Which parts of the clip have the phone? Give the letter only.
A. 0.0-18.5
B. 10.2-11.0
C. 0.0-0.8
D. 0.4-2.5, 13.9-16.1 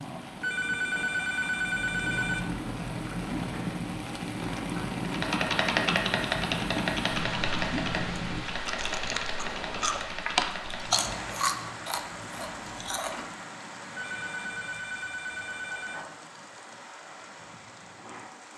D.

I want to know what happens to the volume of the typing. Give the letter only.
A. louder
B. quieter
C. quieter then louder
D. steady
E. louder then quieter
B.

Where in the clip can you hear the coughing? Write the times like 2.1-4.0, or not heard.
10.2-11.0.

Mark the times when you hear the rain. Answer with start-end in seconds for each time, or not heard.
0.0-18.5.